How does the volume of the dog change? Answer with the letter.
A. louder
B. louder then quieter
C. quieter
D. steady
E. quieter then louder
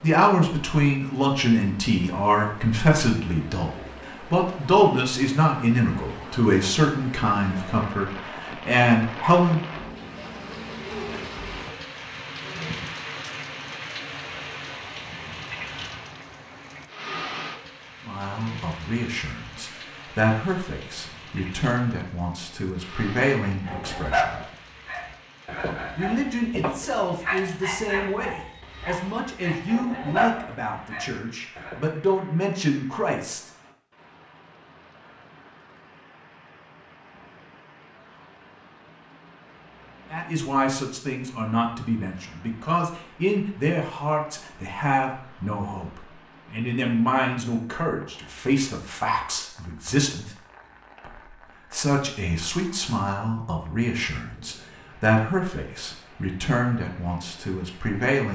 E.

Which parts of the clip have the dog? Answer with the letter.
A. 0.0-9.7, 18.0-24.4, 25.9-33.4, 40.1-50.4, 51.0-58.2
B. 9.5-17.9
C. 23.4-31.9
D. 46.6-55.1
C.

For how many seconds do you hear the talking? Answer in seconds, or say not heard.
41 s.